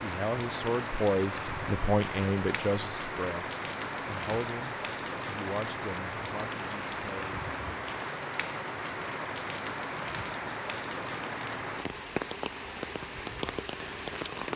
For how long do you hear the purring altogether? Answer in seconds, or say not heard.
not heard.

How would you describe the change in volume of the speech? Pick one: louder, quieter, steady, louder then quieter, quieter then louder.
quieter.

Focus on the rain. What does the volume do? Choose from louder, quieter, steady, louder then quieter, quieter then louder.
steady.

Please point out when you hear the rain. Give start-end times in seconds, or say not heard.
0.0-14.5.